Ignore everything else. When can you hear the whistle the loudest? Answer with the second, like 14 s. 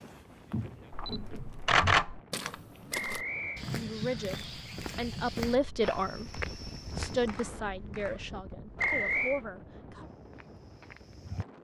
9 s.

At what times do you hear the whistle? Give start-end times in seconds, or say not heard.
2.9-3.6, 8.8-9.4.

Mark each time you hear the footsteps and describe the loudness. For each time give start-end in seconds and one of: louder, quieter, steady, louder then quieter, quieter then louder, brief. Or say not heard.
0.0-7.5 steady
10.0-11.4 brief.